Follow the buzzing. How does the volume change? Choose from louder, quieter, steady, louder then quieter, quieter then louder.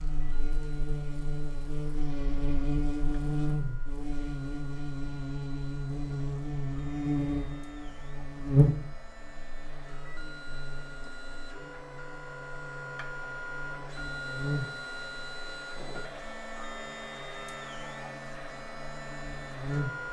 quieter.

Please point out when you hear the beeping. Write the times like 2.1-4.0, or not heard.
not heard.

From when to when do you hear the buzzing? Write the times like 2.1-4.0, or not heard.
0.0-20.0.